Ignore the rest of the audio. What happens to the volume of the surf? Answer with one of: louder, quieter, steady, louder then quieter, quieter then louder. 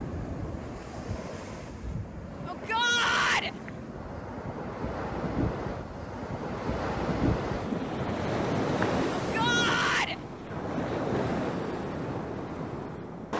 louder.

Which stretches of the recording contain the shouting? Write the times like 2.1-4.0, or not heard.
2.5-3.5, 9.2-10.2.